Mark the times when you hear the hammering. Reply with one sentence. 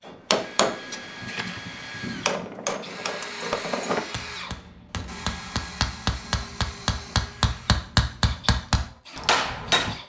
You can hear the hammering from 0.1 to 9.9 s.